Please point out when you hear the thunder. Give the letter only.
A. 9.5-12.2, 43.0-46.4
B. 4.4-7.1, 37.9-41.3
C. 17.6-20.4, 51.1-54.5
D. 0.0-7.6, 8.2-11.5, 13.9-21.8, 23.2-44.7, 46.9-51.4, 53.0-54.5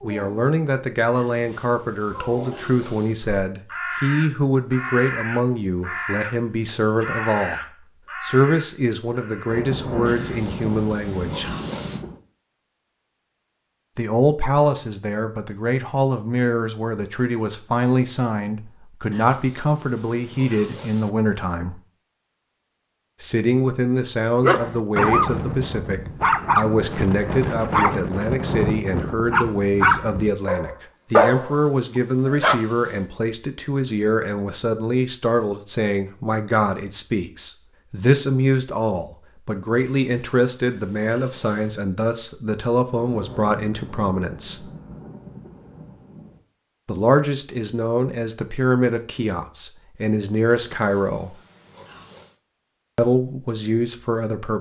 A.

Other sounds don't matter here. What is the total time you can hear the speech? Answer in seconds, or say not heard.
46 s.